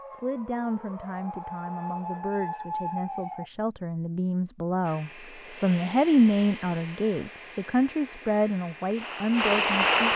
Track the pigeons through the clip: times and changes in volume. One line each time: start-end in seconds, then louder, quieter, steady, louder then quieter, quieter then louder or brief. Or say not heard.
not heard.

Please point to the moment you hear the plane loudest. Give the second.
10 s.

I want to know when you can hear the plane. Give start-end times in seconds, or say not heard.
4.8-10.1.